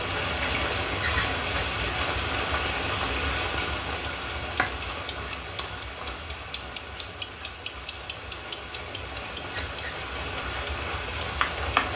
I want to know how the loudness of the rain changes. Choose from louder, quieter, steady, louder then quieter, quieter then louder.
quieter then louder.